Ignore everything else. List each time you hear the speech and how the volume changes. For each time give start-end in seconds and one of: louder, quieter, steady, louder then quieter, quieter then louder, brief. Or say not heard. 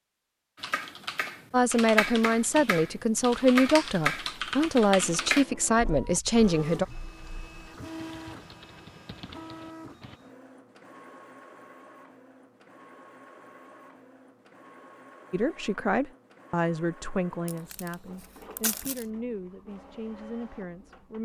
1.5-6.8 steady
15.3-21.1 quieter.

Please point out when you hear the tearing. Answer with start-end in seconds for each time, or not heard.
17.4-19.1.